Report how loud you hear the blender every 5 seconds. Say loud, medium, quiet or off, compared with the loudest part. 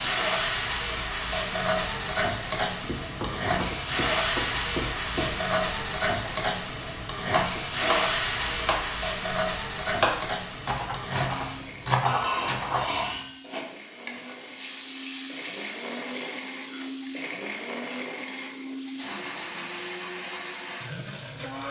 off, off, medium, loud, loud.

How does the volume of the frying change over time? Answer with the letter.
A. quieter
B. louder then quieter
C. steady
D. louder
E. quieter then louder
A.